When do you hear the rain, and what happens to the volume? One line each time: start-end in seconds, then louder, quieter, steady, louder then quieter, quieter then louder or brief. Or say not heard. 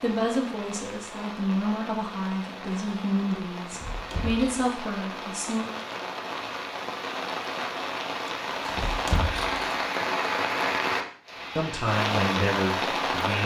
0.0-13.4 louder.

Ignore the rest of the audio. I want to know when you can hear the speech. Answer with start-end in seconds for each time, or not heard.
0.0-5.7, 11.6-13.4.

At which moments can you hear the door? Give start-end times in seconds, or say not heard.
3.6-4.7, 8.7-9.6.